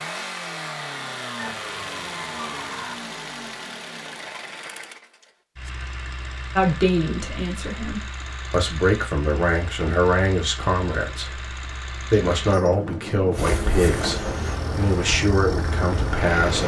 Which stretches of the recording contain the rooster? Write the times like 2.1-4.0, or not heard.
1.4-3.0.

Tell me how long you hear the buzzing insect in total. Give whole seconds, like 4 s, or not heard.
3 s.